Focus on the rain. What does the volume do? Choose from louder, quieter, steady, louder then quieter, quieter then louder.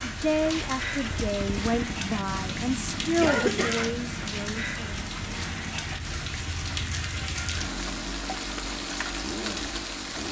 steady.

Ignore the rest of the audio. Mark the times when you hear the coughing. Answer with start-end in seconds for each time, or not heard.
3.2-4.0.